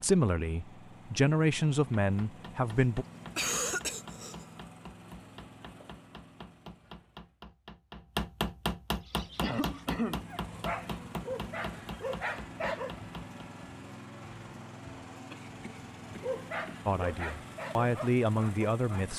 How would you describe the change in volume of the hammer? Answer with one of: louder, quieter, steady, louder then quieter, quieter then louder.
louder then quieter.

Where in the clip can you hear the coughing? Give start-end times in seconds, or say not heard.
2.6-4.5, 9.4-10.2, 15.3-16.9.